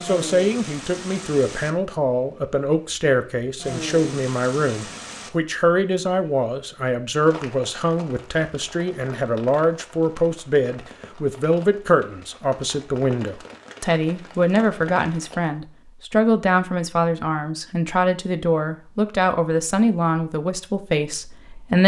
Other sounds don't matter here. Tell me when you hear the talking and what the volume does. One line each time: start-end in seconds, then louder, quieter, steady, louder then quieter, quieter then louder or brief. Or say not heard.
0.0-21.8 steady.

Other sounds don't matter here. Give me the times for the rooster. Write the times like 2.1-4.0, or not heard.
not heard.